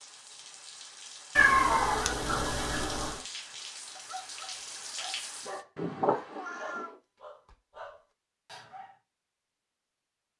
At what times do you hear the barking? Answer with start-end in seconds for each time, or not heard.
4.0-9.0.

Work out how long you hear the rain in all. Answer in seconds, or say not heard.
6 s.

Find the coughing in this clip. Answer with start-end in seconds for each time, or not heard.
not heard.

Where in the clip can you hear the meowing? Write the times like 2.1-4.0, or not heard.
1.4-3.2, 5.8-7.0.